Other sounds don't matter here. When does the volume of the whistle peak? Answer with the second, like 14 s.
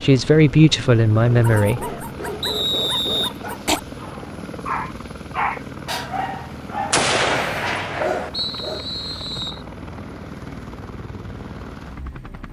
3 s.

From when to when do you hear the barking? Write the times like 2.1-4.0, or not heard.
1.4-8.8.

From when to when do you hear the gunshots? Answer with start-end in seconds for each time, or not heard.
6.9-8.3.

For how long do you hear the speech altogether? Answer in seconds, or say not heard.
2 s.